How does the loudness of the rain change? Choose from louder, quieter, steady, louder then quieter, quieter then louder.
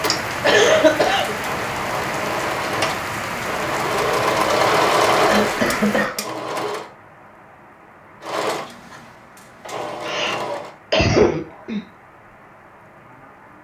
quieter.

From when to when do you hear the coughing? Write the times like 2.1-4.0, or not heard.
0.4-1.4, 5.2-6.2, 10.1-11.8.